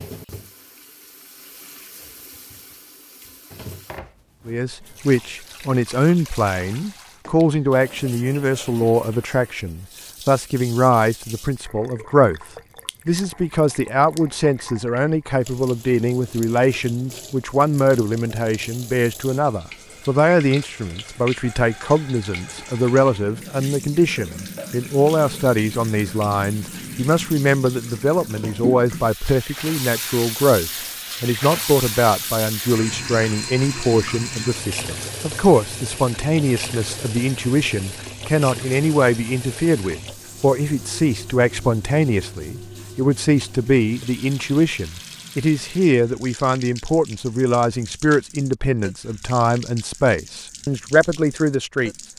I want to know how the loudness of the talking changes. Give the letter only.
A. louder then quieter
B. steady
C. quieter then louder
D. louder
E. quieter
B.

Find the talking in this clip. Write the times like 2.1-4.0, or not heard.
4.5-12.4, 13.1-51.9.